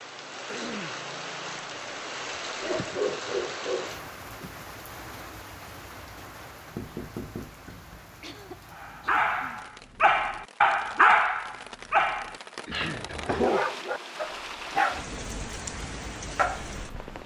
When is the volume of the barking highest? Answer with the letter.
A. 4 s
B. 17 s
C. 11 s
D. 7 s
C.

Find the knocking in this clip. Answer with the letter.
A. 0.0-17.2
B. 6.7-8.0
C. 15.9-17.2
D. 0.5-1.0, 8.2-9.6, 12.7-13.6
B.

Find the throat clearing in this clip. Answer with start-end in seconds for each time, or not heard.
0.5-1.0, 8.2-9.6, 12.7-13.6.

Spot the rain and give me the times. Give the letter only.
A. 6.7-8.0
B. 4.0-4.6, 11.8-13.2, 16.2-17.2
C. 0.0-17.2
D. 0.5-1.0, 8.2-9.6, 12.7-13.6
C.